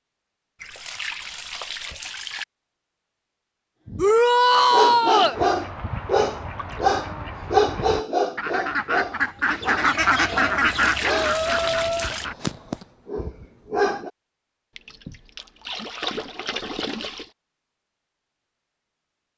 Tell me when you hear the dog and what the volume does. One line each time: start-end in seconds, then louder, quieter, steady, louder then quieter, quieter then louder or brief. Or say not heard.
3.9-14.1 quieter.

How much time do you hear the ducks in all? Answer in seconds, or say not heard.
7 s.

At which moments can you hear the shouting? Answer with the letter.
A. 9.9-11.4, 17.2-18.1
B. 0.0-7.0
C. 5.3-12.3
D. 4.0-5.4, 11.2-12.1
D.